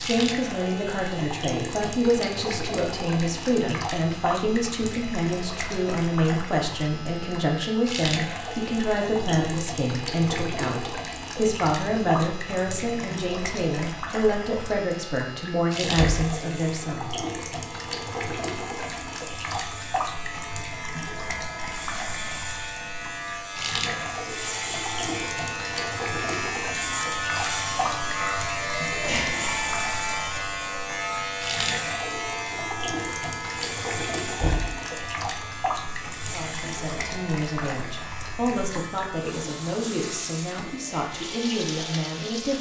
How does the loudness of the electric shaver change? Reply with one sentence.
The volume of the electric shaver goes up, then down.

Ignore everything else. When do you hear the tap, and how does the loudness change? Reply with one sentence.
You can hear the tap from 0.0 to 42.5 s, at a steady volume.